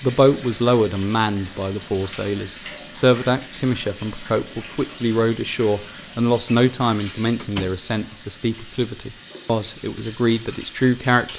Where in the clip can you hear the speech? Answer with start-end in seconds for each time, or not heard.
0.0-11.3.